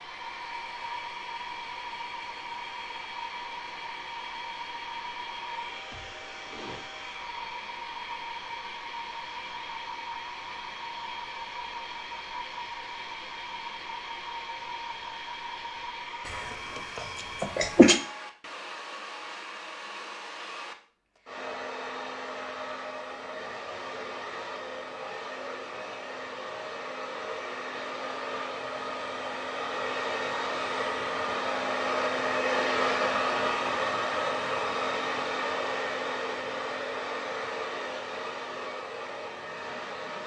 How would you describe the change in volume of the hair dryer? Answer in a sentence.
The volume of the hair dryer goes up.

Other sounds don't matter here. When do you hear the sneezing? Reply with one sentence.
You can hear the sneezing from 16.2 to 18.0 s.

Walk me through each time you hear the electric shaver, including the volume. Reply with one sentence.
The electric shaver can't be heard in this clip.